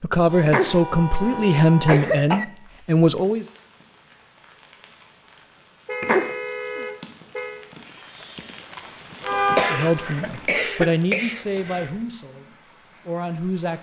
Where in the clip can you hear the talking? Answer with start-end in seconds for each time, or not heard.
0.0-3.5, 9.7-13.7.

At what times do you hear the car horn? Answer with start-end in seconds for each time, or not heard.
0.2-1.9, 5.8-7.7, 9.2-10.1.